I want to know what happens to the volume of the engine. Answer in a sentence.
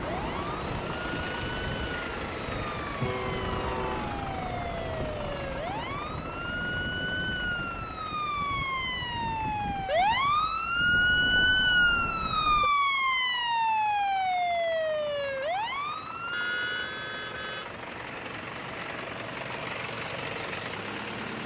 The loudness of the engine goes down, then up.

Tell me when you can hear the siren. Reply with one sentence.
You can hear the siren from 0.0 to 16.9 s.